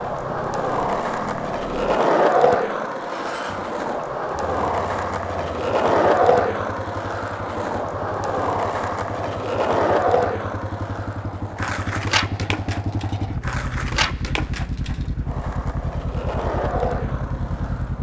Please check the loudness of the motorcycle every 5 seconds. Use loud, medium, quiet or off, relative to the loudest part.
medium, medium, loud, loud.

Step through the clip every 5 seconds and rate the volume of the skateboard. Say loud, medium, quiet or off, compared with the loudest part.
loud, loud, medium, medium.